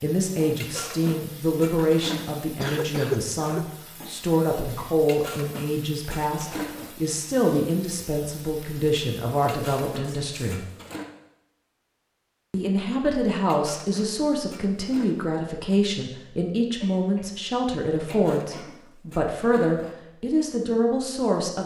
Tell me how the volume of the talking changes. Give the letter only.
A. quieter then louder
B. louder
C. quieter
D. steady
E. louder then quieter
D.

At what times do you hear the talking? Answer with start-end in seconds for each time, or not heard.
0.0-10.7, 12.5-21.6.